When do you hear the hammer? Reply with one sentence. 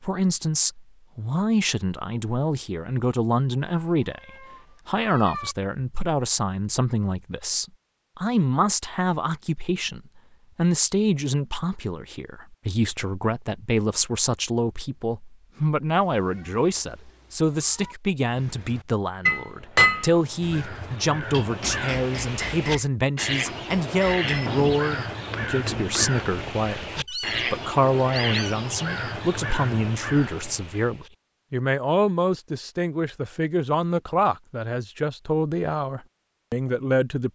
You can hear the hammer from 18.2 to 22.9 s and from 23.8 to 26.2 s.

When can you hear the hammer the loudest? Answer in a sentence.
The volume of the hammer peaks at 20 seconds.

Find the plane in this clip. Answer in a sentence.
You can't hear the plane here.